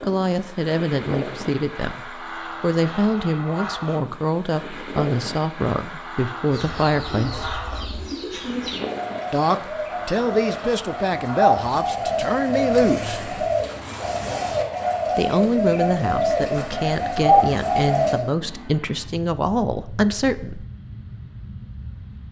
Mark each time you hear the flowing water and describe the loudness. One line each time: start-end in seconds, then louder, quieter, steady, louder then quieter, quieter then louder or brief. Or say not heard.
not heard.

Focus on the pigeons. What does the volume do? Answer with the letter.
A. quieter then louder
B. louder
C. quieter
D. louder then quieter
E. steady
B.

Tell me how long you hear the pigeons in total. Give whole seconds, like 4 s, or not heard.
12 s.